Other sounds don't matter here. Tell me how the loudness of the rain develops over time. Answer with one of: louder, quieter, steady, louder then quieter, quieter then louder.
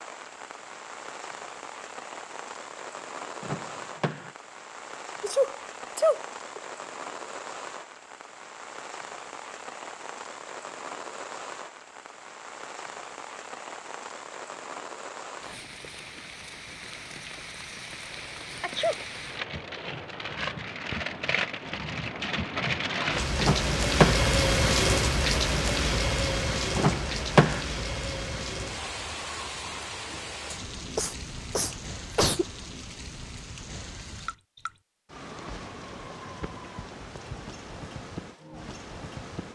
louder then quieter.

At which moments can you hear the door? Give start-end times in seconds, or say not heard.
3.4-4.3, 23.4-24.3, 26.8-27.6.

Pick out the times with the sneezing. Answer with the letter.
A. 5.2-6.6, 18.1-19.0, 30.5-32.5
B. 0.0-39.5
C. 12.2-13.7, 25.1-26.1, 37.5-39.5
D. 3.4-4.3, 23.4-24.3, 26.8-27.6
A.